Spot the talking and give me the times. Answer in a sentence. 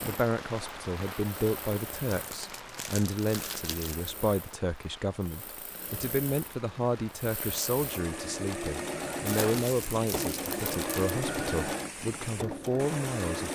The talking can be heard from 0.0 to 13.5 s.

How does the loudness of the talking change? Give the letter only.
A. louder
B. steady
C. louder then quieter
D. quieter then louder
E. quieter
B.